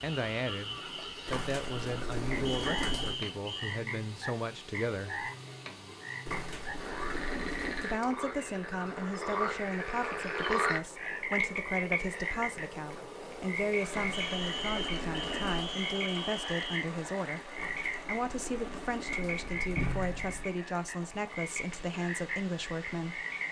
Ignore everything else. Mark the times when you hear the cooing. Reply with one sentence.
You can hear the cooing from 1.2 to 3.1 s, from 6.2 to 7.9 s, from 13.9 to 15.8 s and from 17.6 to 20.5 s.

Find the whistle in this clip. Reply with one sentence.
You can hear the whistle from 2.5 to 3.8 s and from 14.1 to 16.9 s.